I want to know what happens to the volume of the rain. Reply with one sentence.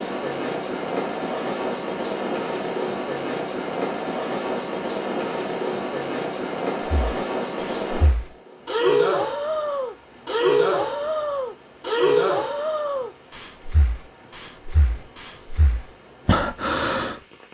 The loudness of the rain goes down.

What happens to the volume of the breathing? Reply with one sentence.
The loudness of the breathing goes down, then up.